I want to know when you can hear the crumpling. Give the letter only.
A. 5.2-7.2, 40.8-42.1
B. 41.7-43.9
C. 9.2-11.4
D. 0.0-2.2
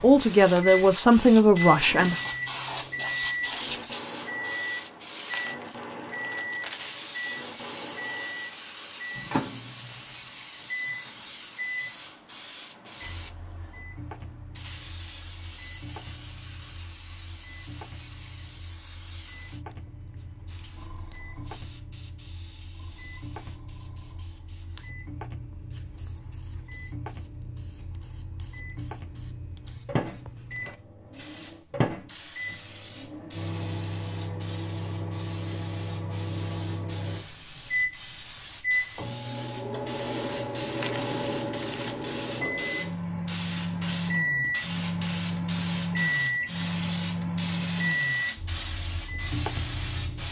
A.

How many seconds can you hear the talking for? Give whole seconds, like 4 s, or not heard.
2 s.